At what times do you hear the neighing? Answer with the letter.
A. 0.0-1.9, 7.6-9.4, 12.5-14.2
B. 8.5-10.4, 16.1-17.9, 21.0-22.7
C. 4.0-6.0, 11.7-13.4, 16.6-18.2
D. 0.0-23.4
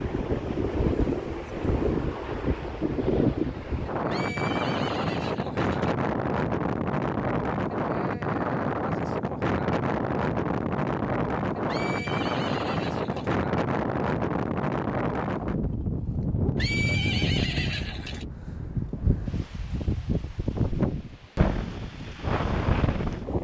C.